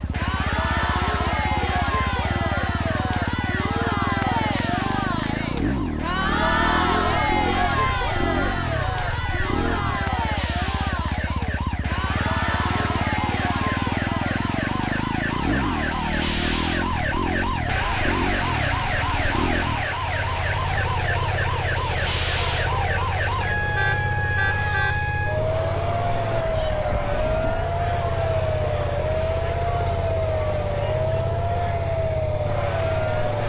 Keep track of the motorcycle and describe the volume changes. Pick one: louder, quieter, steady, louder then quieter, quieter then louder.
steady.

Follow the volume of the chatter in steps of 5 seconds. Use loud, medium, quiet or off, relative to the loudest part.
loud, loud, medium, medium, medium, medium, medium.